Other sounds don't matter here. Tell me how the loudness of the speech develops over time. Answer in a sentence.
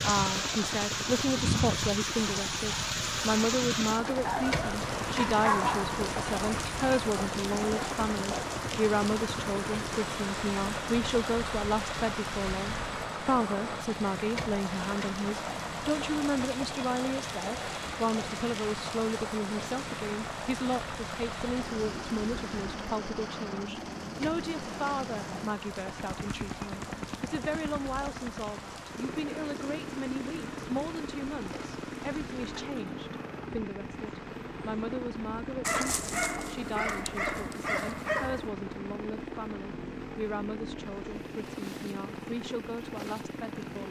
The loudness of the speech goes down.